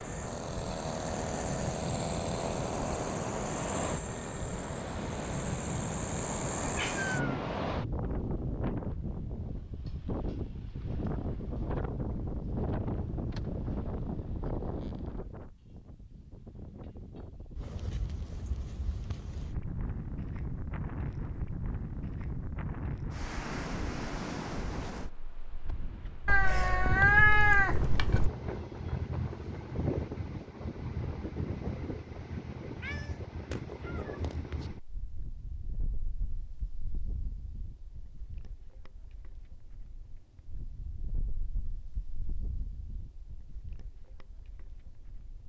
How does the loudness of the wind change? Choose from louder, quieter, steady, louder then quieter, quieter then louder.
quieter.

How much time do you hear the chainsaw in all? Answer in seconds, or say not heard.
7 s.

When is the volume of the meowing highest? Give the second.
27 s.